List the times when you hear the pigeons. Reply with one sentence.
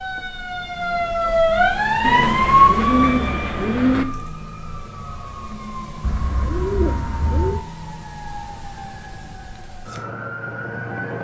You can hear the pigeons from 2.0 to 4.0 s and from 6.0 to 7.7 s.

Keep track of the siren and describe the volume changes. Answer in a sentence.
The loudness of the siren goes down.